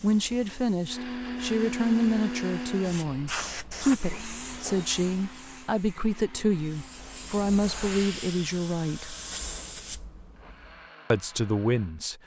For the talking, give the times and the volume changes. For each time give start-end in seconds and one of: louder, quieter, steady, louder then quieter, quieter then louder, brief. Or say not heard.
0.0-9.2 steady
11.1-12.2 brief.